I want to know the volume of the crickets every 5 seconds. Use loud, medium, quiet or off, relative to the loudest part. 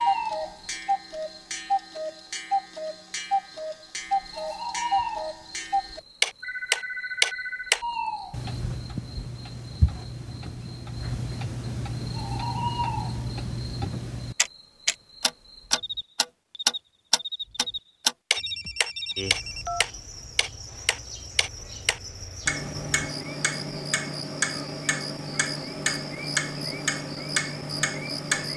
loud, loud, loud, loud, medium, loud.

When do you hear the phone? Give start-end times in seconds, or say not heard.
6.4-7.8, 18.4-19.9.